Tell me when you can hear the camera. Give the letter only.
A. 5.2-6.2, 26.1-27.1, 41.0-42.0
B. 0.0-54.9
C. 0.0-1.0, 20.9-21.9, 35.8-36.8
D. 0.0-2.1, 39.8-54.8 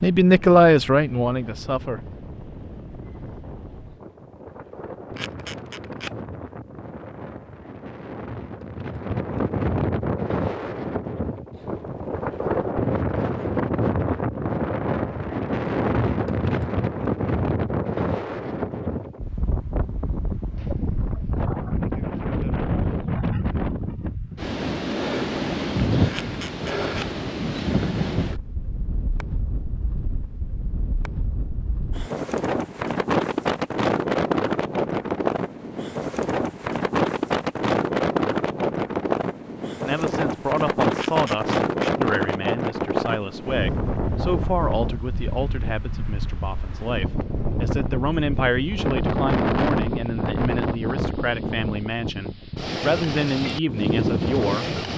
A.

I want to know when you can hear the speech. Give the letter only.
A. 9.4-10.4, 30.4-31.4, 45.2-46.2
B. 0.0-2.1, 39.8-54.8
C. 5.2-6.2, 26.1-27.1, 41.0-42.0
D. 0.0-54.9
B.